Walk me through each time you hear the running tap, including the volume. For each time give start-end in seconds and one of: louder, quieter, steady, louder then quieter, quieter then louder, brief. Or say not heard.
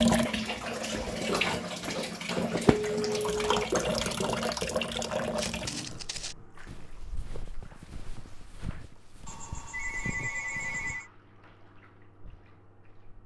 0.0-13.2 quieter.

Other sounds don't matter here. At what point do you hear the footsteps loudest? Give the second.
6 s.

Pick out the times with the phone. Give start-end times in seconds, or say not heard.
2.6-3.8, 9.2-11.1.